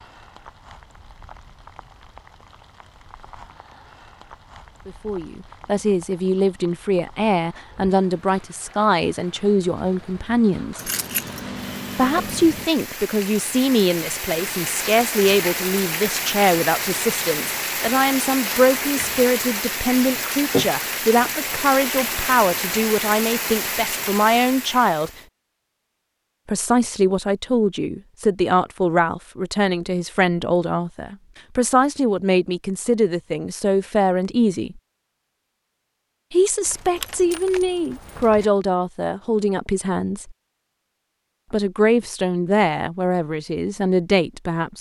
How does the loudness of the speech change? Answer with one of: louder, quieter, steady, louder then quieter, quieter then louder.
steady.